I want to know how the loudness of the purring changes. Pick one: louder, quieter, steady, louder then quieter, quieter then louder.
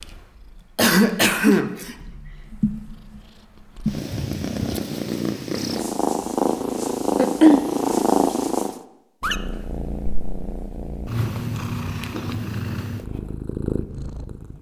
louder then quieter.